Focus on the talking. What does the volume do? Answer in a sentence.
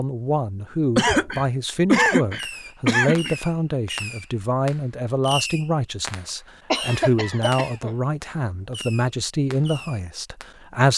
The volume of the talking stays about the same.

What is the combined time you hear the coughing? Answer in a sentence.
The coughing can be heard for 4 seconds in total.